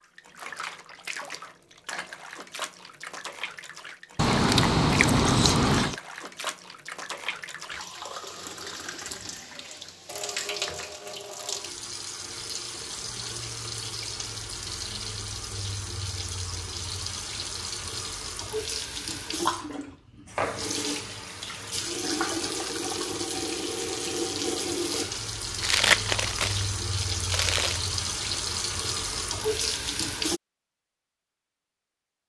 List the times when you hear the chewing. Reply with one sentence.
You can hear the chewing from 4.2 to 6.0 s and from 25.6 to 27.8 s.